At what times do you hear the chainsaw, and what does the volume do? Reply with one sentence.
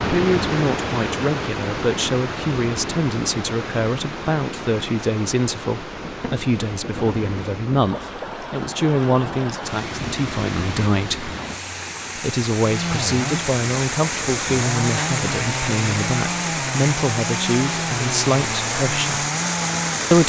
The chainsaw can be heard from 12.6 to 20.1 s, at a steady volume.